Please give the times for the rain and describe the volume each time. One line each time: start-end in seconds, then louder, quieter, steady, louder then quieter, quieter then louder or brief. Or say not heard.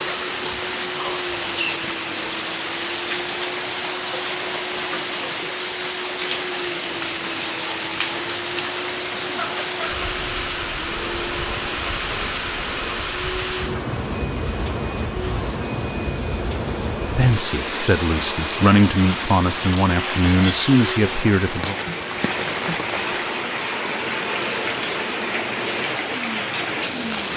0.0-27.3 steady.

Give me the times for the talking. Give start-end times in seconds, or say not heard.
17.1-21.8.